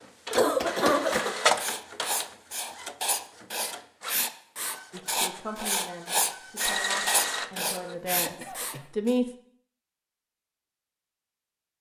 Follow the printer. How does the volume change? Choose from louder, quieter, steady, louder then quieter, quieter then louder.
quieter then louder.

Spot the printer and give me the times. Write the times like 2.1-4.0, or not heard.
0.0-8.0.